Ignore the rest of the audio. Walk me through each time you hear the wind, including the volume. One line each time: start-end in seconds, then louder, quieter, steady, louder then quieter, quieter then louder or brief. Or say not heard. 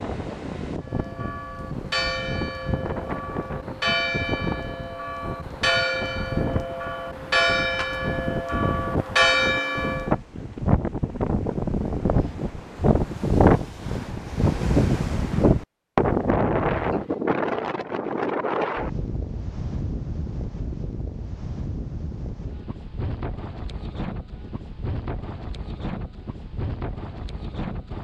0.0-27.9 louder then quieter.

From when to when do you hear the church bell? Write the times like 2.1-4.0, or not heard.
0.8-10.2.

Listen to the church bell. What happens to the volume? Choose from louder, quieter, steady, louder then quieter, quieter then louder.
louder.